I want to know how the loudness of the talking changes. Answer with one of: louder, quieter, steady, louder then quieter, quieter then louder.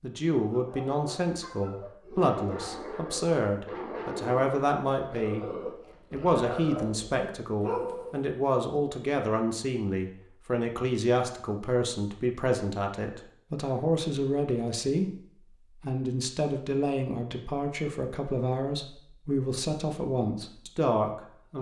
steady.